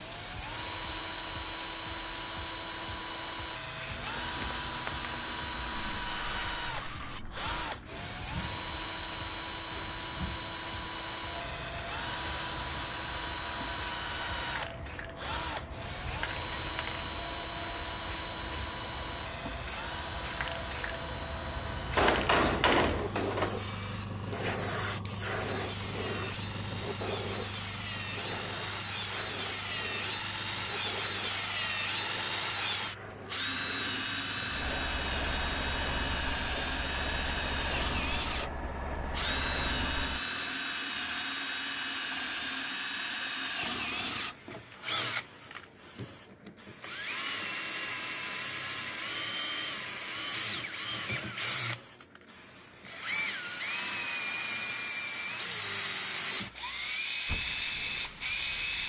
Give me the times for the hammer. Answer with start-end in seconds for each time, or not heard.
21.9-23.6.